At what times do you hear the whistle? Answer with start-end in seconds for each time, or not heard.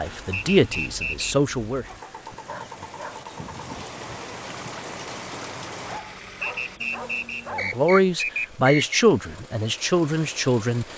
0.3-1.4, 6.4-9.1.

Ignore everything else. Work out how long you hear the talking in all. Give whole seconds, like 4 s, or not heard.
5 s.